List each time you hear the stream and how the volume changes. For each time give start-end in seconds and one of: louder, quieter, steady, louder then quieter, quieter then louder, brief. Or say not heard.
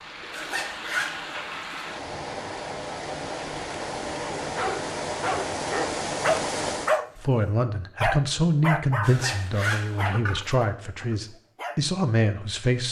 0.0-7.0 louder.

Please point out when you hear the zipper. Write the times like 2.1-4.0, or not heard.
0.3-1.6, 9.0-10.2.